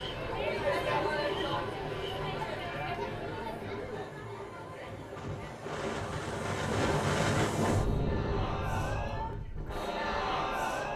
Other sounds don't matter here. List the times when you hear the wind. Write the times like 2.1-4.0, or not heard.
0.0-10.9.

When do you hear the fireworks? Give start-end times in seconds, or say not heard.
not heard.